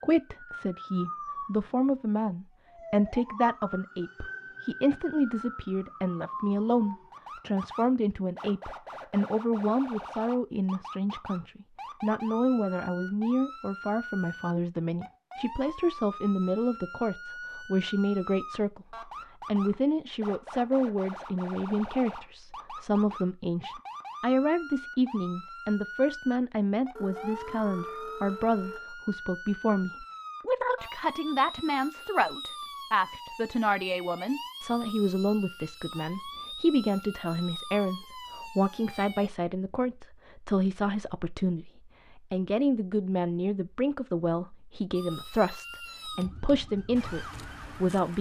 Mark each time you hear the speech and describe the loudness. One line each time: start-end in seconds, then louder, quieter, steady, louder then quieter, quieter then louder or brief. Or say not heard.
0.0-48.1 steady.